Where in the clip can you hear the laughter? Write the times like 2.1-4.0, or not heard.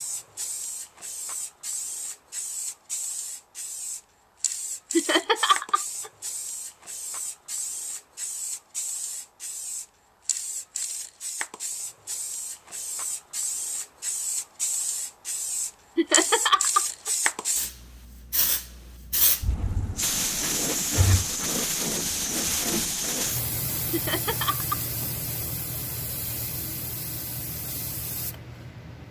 5.0-6.1, 15.9-17.1, 23.9-24.8.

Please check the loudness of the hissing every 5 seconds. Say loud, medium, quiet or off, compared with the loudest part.
medium, medium, medium, loud, loud, medium.